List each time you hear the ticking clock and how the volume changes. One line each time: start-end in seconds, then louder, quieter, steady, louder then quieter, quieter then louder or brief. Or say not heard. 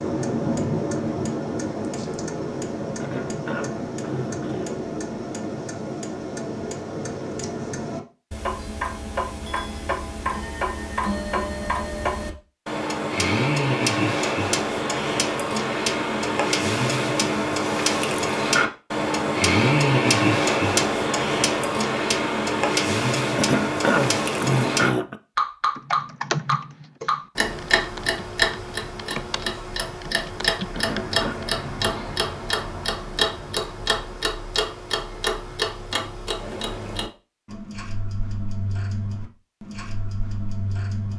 0.0-41.1 louder then quieter.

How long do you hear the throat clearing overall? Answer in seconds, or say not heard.
4 s.